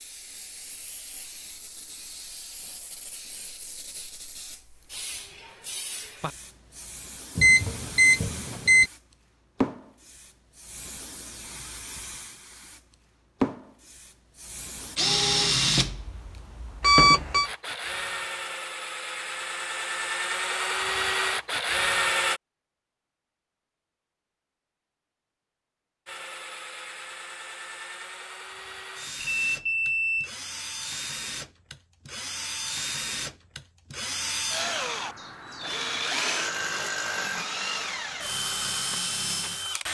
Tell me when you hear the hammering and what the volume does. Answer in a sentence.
The hammering can't be heard in this clip.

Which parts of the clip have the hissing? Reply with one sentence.
The hissing can be heard from 0.0 to 15.0 s.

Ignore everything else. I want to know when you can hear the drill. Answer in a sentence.
The drill can be heard from 14.9 to 22.4 s and from 26.1 to 39.8 s.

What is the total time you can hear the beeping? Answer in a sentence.
The beeping can be heard for 3 seconds in total.